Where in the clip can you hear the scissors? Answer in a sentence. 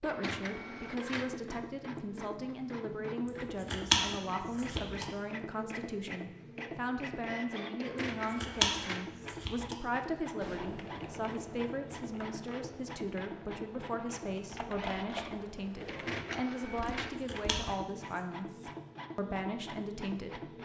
The scissors can be heard from 3.7 to 5.0 s, from 8.4 to 9.8 s and from 17.2 to 18.2 s.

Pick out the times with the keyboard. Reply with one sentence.
The keyboard can be heard from 10.4 to 17.7 s.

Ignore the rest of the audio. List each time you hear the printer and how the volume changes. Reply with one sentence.
The printer can be heard from 0.0 to 20.5 s, at a steady volume.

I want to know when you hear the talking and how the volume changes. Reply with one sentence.
You can hear the talking from 0.0 to 20.4 s, at a steady volume.